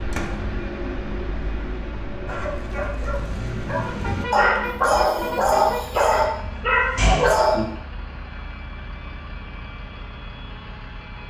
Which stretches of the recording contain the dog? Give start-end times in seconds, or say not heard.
2.2-7.7.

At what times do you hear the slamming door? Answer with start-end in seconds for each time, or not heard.
0.1-0.5, 6.3-7.5.